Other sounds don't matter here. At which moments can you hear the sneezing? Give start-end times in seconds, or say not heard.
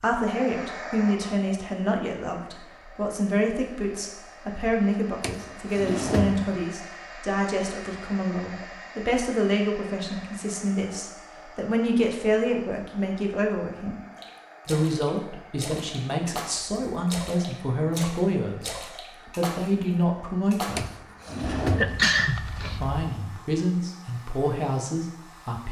21.6-23.1.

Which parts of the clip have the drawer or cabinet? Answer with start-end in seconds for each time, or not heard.
5.2-6.7, 20.8-22.1.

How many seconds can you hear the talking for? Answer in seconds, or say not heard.
23 s.